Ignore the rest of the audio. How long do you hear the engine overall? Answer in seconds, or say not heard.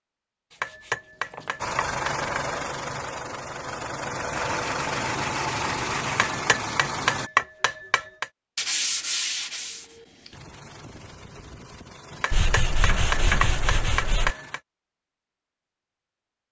10 s.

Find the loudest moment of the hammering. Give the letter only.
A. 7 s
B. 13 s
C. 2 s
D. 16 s
A.